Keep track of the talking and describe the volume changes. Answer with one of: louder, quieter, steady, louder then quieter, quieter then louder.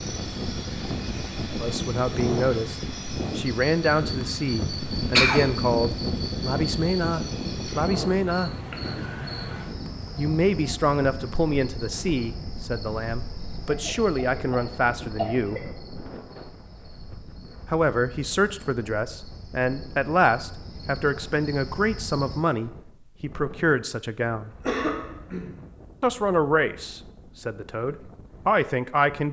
steady.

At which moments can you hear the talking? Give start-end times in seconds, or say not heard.
1.6-8.5, 10.2-15.7, 17.7-24.5, 26.0-29.2.